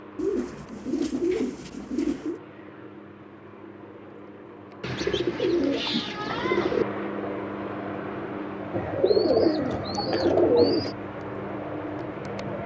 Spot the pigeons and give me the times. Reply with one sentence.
The pigeons can be heard from 0.1 to 2.4 s, from 4.8 to 6.8 s and from 8.7 to 10.9 s.